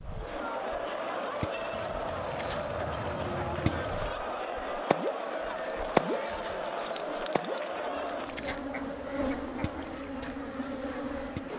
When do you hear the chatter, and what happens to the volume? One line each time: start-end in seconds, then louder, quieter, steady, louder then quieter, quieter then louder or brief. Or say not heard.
0.0-11.5 quieter.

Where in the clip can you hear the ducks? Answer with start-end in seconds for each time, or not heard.
1.7-4.0, 8.4-10.1.